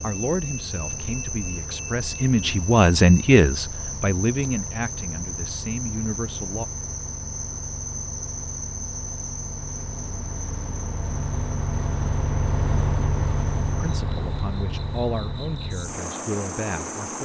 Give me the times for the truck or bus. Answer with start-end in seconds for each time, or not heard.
0.0-17.1.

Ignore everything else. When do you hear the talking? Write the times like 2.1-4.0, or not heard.
0.0-6.7, 13.8-17.1.